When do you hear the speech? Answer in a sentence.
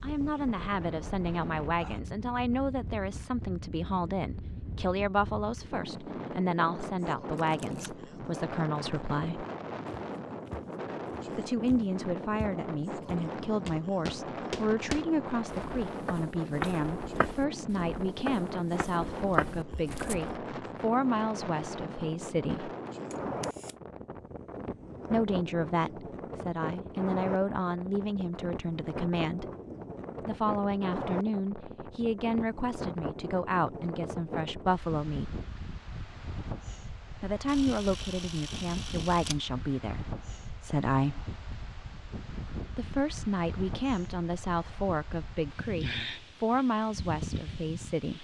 You can hear the speech from 0.0 to 9.4 s, from 11.3 to 22.7 s, from 25.1 to 29.4 s, from 30.2 to 35.4 s, from 37.2 to 41.2 s and from 42.8 to 48.1 s.